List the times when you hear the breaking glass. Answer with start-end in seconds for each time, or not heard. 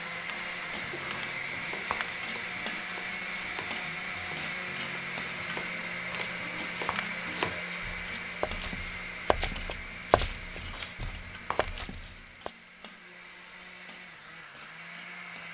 1.1-2.1, 6.1-7.2, 10.7-11.9.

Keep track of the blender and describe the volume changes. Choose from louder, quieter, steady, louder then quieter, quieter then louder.
quieter.